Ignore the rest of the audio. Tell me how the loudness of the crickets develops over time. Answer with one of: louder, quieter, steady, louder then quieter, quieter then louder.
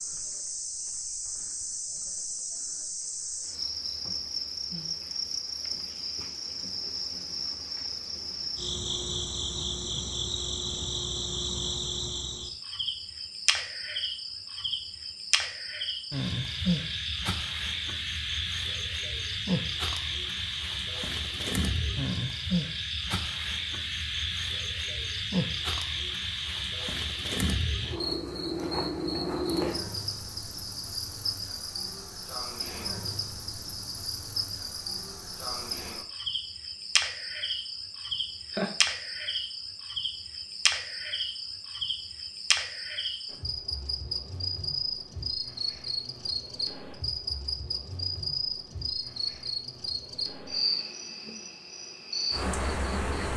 steady.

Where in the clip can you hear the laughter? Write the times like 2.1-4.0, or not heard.
38.1-38.8.